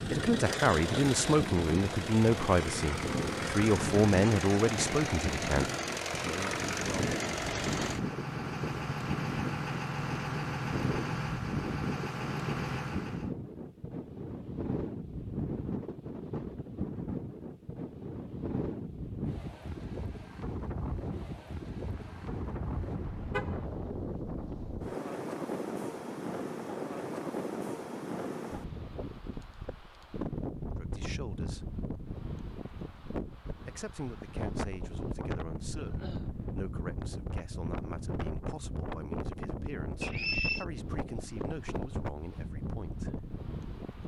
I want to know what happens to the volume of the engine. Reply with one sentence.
The loudness of the engine stays about the same.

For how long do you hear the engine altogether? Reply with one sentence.
You can hear the engine for 13 seconds altogether.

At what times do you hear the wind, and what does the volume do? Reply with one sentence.
The wind can be heard from 0.0 to 44.0 s, at a steady volume.